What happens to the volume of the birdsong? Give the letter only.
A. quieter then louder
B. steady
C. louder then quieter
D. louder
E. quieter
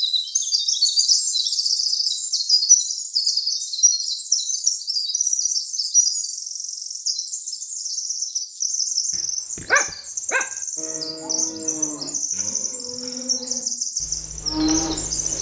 E.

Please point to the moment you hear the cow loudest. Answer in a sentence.
The loudest moment of the cow is at 15 seconds.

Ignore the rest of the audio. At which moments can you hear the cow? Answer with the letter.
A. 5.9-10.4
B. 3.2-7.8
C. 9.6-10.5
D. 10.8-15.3
D.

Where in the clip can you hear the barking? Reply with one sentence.
You can hear the barking from 9.6 to 10.5 s.